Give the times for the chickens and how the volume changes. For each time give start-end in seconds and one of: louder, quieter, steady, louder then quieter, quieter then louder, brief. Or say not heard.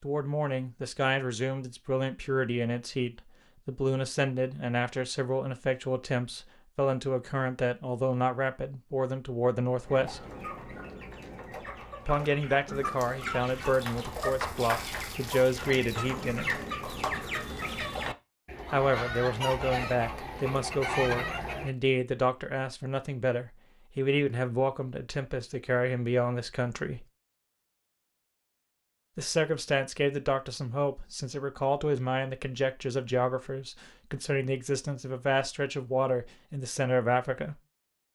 9.8-21.7 louder.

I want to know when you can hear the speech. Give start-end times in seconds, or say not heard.
0.0-10.2, 12.1-16.6, 18.7-27.1, 29.1-37.5.